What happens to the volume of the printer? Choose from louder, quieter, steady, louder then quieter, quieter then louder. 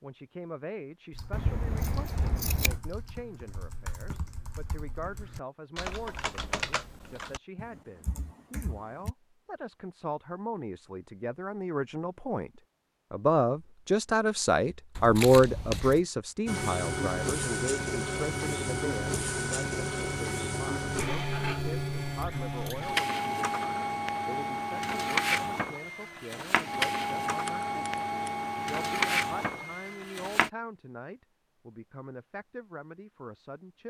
steady.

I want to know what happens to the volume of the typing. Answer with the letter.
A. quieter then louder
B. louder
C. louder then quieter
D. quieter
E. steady
C.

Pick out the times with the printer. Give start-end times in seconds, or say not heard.
16.4-30.5.